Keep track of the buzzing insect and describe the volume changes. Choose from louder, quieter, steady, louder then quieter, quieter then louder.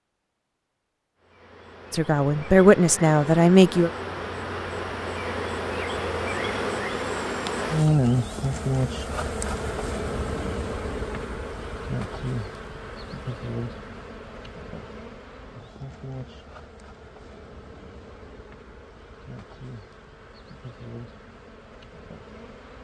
louder then quieter.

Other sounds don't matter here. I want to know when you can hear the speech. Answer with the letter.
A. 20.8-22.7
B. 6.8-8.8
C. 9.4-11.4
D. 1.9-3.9
D.